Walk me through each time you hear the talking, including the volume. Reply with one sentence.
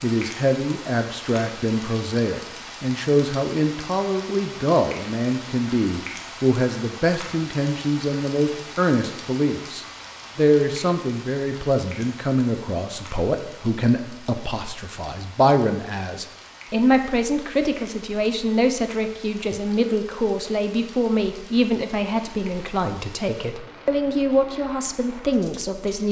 The talking can be heard from 0.0 to 26.0 s, at a steady volume.